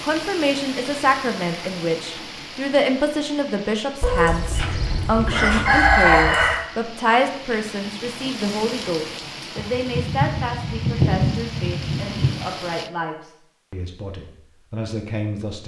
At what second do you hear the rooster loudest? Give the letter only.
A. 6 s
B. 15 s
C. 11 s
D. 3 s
A.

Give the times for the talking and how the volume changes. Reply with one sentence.
You can hear the talking from 0.0 to 15.6 s, getting quieter.